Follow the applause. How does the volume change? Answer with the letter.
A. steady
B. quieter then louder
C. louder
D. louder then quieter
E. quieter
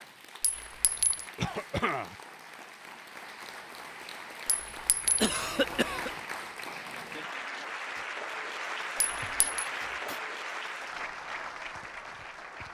C.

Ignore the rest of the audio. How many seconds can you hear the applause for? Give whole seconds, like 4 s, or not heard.
13 s.